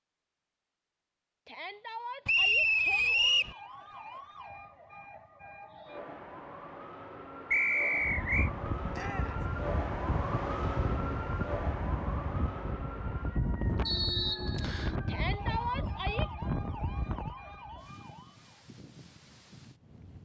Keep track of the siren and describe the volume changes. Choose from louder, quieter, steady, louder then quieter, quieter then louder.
louder then quieter.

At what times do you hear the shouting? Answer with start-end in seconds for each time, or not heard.
1.4-3.5, 8.9-9.4, 15.1-16.3.